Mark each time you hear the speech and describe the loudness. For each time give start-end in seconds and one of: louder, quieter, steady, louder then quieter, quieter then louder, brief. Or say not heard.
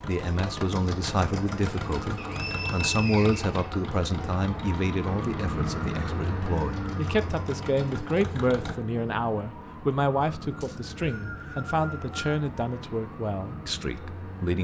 0.1-14.5 steady.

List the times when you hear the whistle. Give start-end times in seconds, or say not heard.
2.1-4.2, 10.6-12.5.